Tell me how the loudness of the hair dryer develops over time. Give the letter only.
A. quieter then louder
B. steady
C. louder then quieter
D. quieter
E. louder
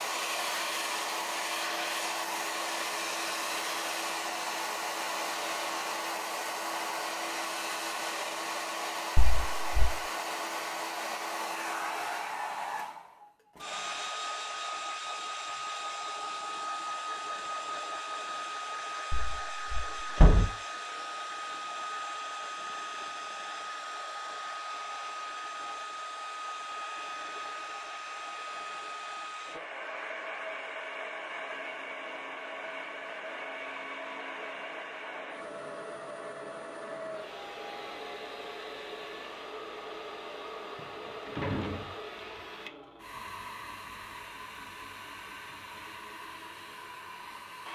D.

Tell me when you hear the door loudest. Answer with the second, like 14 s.
20 s.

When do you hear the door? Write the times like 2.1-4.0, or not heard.
9.2-10.0, 19.1-20.4, 40.8-42.0.